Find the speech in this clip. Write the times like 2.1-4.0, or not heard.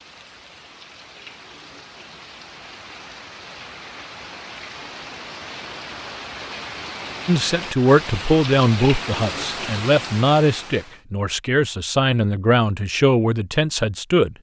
7.2-14.3.